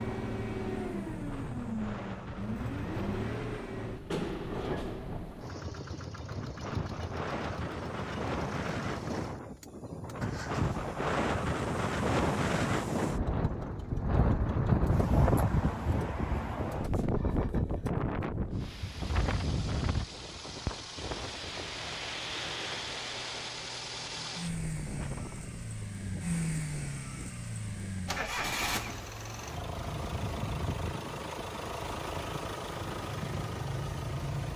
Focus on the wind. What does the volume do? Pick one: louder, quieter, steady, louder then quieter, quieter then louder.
louder then quieter.